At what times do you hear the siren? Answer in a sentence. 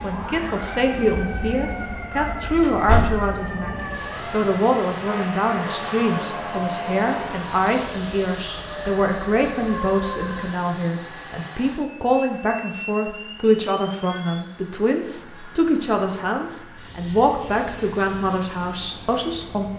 The siren can be heard from 0.0 to 10.6 s.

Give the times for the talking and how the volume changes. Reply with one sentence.
You can hear the talking from 0.0 to 19.7 s, at a steady volume.